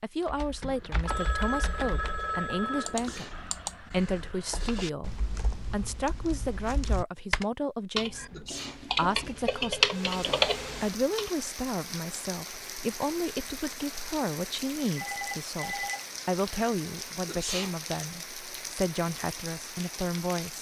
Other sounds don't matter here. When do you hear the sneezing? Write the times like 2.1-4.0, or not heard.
2.9-3.4, 8.2-8.8, 17.2-17.8.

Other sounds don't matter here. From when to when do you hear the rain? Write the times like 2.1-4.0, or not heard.
9.8-20.5.